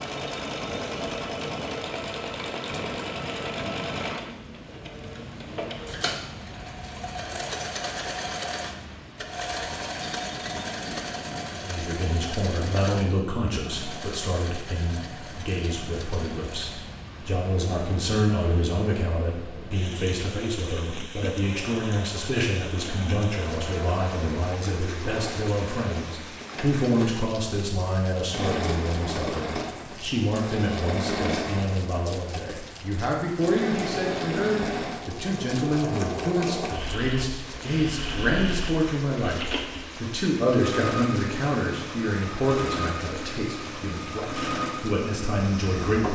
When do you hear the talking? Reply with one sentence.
The talking can be heard from 11.5 to 46.0 s.